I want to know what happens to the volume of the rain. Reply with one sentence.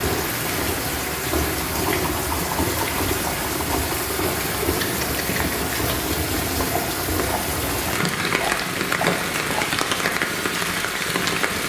The loudness of the rain stays about the same.